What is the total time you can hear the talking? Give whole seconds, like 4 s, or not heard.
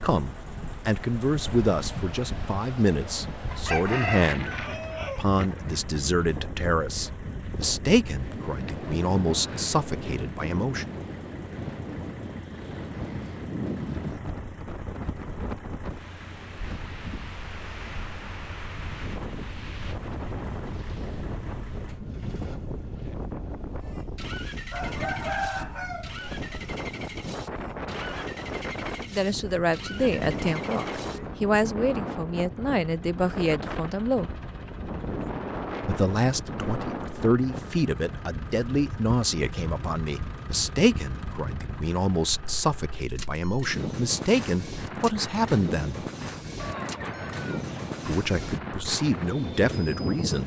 29 s.